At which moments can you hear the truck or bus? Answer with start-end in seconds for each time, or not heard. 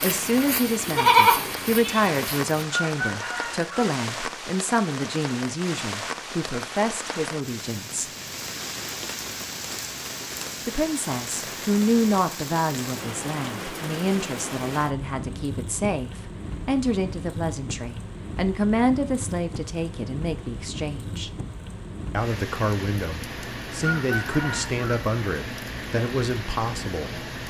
not heard.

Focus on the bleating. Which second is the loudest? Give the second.
1 s.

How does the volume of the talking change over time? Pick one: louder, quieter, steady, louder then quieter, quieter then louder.
steady.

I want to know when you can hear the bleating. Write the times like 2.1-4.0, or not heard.
0.0-2.6.